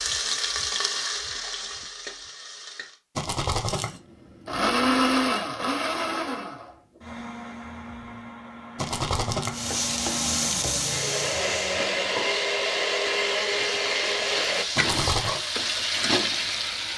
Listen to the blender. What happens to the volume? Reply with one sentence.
The volume of the blender goes down, then up.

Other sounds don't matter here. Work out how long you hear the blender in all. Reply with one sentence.
You can hear the blender for 11 seconds altogether.